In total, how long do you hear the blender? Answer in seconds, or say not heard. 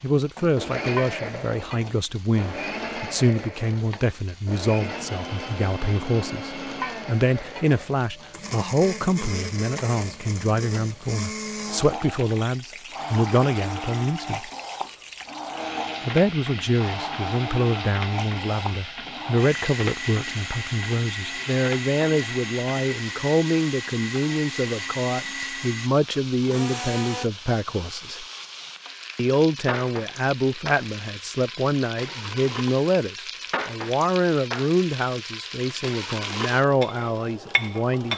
27 s.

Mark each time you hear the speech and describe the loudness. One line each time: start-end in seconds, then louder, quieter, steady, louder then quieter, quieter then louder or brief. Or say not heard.
0.0-14.5 steady
16.1-28.2 steady
29.1-38.1 steady.